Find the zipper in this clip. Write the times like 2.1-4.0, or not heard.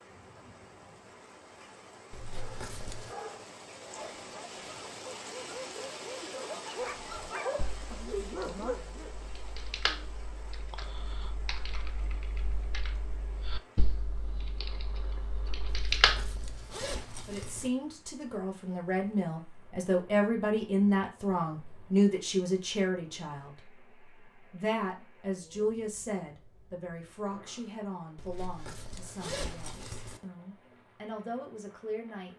2.1-3.1, 15.7-17.7, 28.1-30.2.